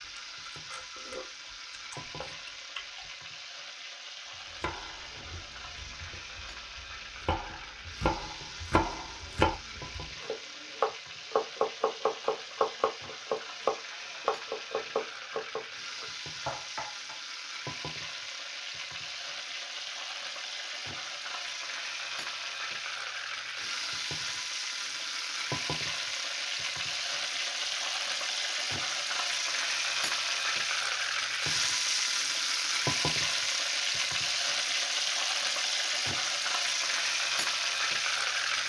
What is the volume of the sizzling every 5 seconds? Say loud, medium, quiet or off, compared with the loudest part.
quiet, quiet, quiet, medium, medium, loud, loud, loud.